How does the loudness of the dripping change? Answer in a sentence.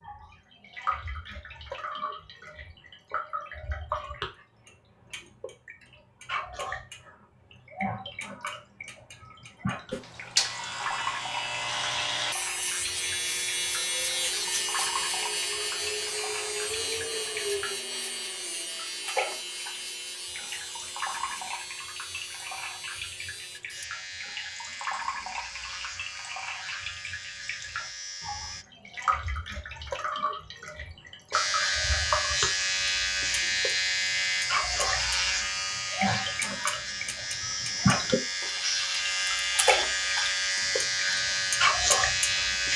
The volume of the dripping goes up.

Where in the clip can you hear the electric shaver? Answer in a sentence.
You can hear the electric shaver from 9.9 to 28.6 s and from 31.3 to 42.7 s.